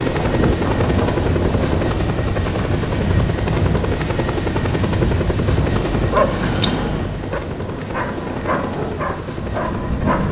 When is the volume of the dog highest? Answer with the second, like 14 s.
6 s.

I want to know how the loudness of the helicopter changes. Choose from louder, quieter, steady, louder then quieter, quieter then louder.
quieter.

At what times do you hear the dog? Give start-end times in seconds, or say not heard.
6.0-10.2.